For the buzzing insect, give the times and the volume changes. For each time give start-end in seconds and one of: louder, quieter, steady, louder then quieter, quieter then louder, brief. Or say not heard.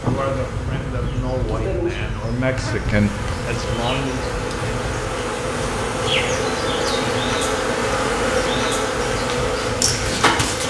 0.0-10.6 louder.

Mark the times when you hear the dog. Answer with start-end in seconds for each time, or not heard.
not heard.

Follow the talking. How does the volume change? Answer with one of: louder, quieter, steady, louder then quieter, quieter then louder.
louder then quieter.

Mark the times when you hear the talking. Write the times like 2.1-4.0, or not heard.
0.0-4.2.